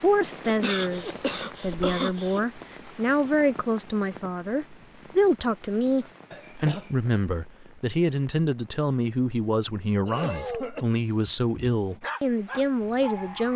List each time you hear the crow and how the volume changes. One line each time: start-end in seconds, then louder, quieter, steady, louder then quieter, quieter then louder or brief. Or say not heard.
not heard.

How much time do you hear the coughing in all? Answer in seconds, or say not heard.
3 s.